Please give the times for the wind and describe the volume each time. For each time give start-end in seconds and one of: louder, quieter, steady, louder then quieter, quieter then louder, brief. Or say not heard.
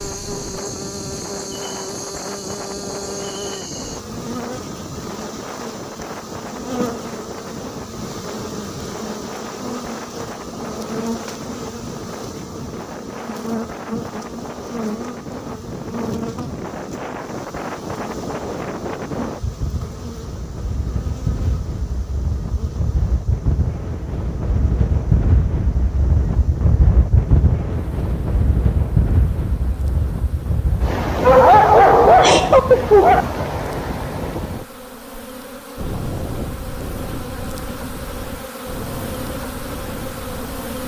0.0-40.8 louder then quieter.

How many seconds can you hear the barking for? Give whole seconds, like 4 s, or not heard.
2 s.